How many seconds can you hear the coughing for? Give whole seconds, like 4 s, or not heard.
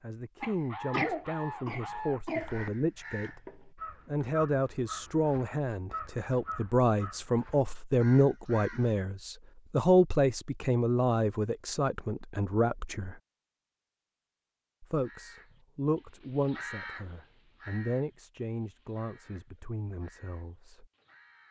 2 s.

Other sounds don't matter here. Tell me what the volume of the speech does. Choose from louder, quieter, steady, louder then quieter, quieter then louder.
louder then quieter.